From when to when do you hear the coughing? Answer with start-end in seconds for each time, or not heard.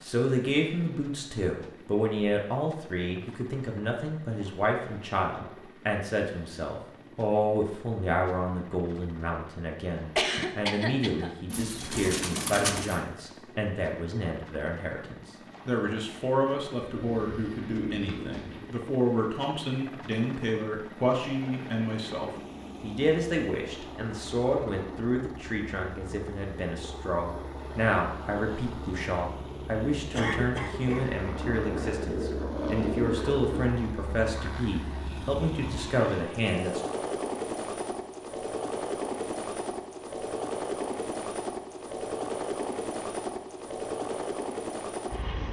10.2-11.3, 30.1-31.1.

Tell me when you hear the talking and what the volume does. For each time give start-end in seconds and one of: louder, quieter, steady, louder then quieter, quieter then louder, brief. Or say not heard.
0.0-36.8 steady.